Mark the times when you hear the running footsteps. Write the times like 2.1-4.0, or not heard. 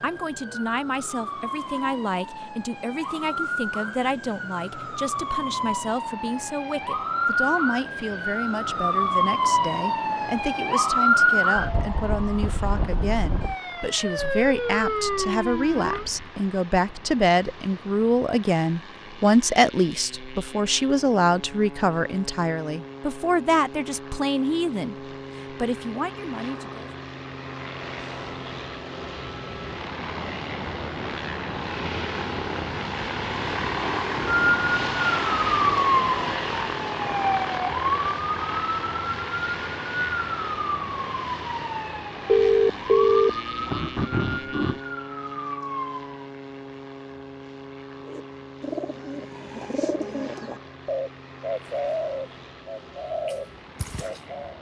not heard.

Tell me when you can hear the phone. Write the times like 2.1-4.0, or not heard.
14.2-16.3, 42.2-44.8.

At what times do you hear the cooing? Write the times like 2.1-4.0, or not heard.
48.0-54.5.